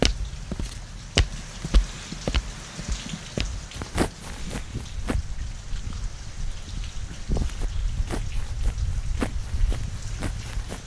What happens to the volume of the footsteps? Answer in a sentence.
The volume of the footsteps goes down.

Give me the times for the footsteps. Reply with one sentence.
The footsteps can be heard from 0.0 to 5.2 s and from 7.1 to 10.8 s.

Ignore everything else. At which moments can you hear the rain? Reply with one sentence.
You can hear the rain from 0.0 to 10.8 s.